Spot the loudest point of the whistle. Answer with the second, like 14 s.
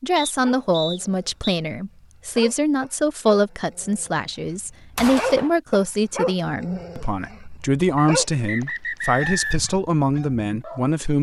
9 s.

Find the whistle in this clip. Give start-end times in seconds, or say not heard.
0.1-1.6, 8.0-9.6.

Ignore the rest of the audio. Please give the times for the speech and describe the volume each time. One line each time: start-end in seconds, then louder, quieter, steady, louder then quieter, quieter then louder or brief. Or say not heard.
0.0-11.1 steady.